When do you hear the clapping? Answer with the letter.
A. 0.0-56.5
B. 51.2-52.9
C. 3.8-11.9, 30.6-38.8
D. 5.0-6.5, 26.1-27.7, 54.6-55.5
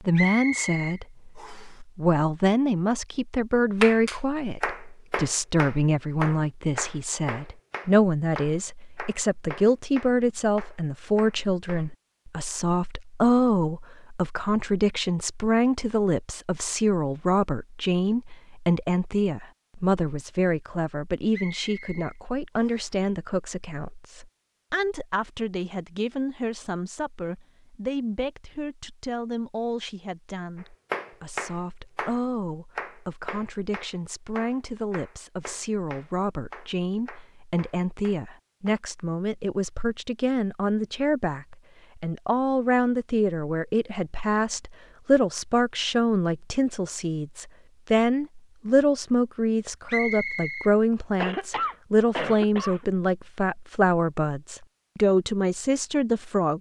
C.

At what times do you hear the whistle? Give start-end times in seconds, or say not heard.
0.1-1.8, 21.3-22.9, 49.9-50.7.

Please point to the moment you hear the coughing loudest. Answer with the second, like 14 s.
52 s.